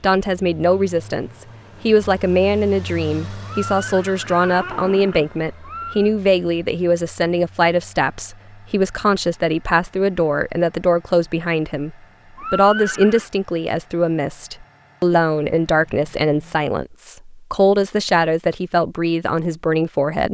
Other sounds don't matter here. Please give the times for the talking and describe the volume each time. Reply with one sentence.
The talking can be heard from 0.0 to 20.2 s, at a steady volume.